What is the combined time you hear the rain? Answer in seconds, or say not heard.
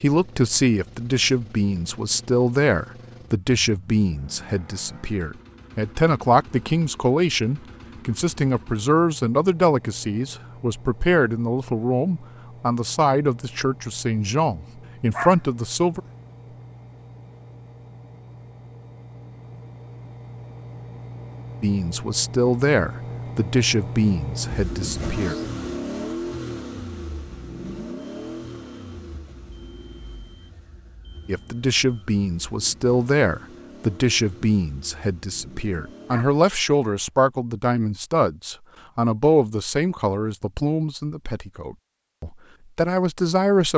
not heard.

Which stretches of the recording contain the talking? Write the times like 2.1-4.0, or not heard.
0.0-16.0, 21.6-25.4, 31.2-43.7.